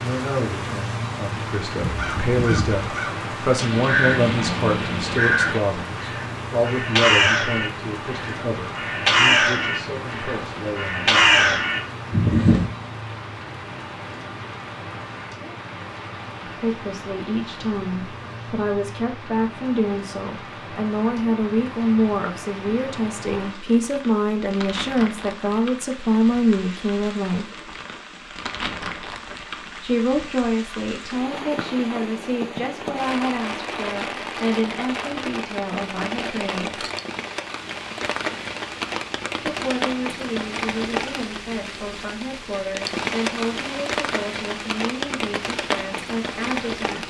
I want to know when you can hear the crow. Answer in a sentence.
The crow can be heard from 1.7 to 12.7 s.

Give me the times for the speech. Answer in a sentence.
The speech can be heard from 0.0 to 11.7 s, from 16.4 to 27.4 s, from 29.8 to 36.9 s and from 39.4 to 47.0 s.